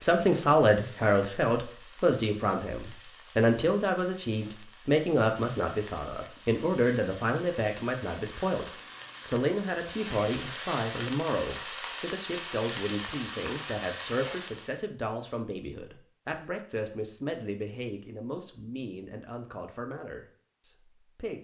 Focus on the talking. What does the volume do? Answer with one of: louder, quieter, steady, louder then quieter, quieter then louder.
quieter.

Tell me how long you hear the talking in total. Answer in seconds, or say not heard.
21 s.